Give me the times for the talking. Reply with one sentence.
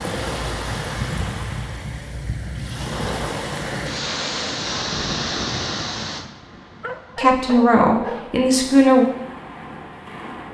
You can hear the talking from 7.2 to 9.1 s.